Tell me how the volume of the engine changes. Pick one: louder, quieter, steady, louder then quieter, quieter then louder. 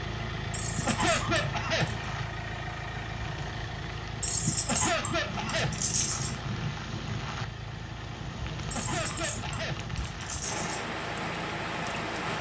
quieter.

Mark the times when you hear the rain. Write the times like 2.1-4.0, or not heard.
0.0-12.3.